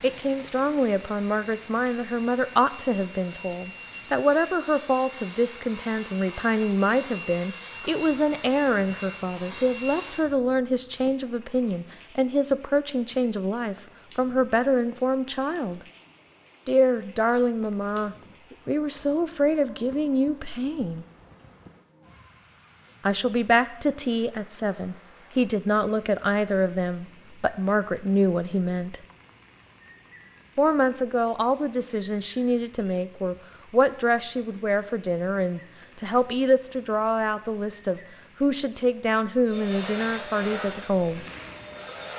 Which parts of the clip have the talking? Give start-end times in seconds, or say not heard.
0.0-15.8, 16.6-21.1, 23.1-29.0, 30.6-41.2.